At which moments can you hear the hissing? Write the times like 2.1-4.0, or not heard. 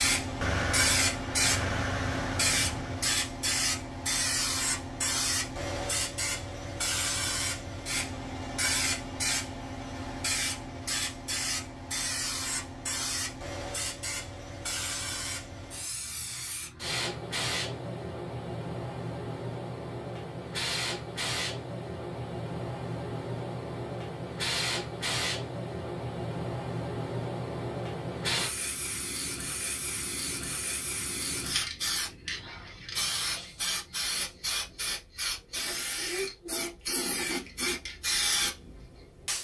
0.0-39.3.